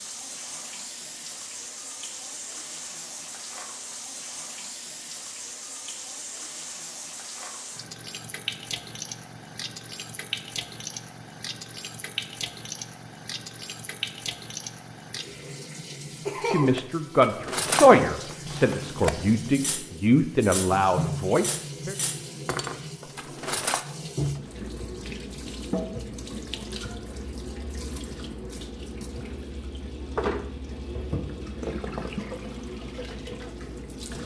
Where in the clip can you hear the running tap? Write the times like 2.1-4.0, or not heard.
0.0-34.2.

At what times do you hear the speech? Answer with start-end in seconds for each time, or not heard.
16.4-21.9.